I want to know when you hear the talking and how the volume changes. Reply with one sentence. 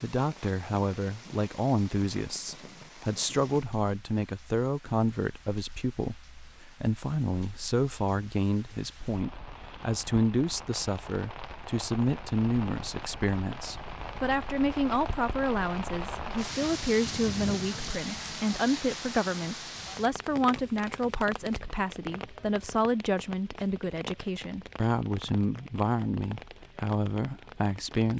You can hear the talking from 0.0 to 28.1 s, at a steady volume.